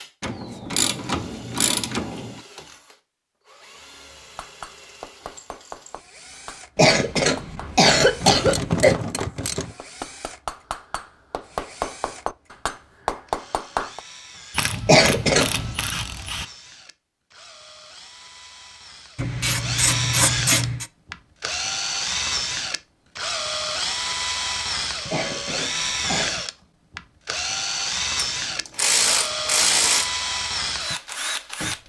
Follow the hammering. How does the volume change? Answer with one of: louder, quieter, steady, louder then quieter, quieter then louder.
louder.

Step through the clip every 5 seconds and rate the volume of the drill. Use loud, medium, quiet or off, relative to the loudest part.
quiet, quiet, quiet, medium, loud, loud, loud.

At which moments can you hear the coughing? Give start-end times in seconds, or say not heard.
6.8-8.9, 14.8-15.8, 25.1-26.4.